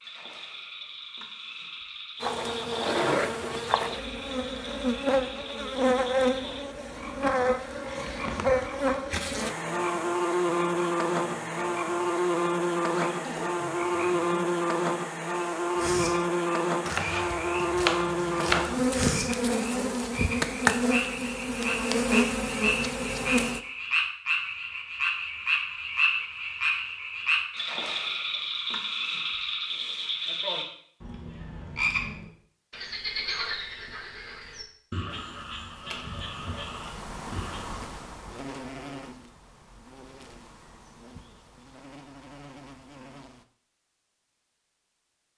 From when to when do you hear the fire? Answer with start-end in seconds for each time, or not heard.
not heard.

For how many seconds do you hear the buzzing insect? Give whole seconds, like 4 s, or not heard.
30 s.